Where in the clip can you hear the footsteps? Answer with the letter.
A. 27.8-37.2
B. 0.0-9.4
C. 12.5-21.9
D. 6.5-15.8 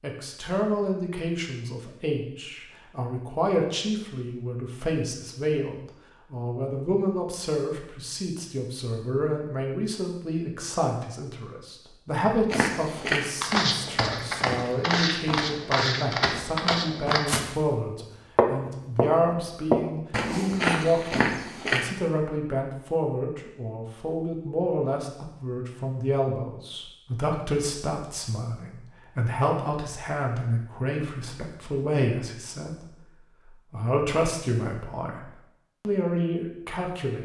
C.